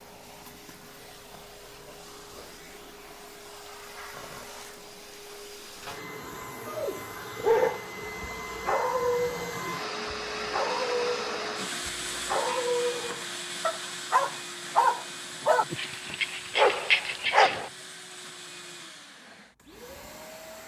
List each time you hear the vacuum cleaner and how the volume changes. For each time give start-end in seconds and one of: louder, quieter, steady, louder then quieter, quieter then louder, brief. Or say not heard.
0.0-20.6 louder then quieter.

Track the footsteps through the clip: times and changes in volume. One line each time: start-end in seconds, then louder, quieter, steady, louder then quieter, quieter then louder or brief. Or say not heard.
not heard.